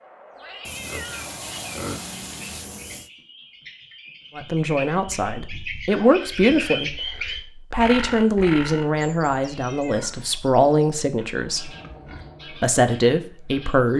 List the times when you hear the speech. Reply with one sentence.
The speech can be heard from 4.3 to 11.7 s and from 12.6 to 13.9 s.